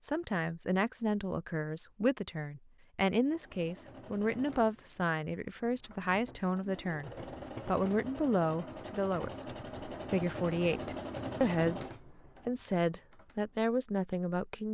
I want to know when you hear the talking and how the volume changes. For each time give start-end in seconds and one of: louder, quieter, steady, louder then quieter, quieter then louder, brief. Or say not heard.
0.0-14.6 steady.